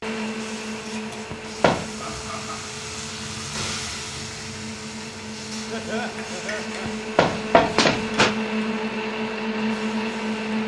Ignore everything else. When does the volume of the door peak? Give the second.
8 s.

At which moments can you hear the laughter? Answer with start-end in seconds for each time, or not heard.
1.9-2.7, 5.7-6.9.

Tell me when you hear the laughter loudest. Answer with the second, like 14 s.
6 s.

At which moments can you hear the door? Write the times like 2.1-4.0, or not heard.
1.3-2.0, 6.8-8.3.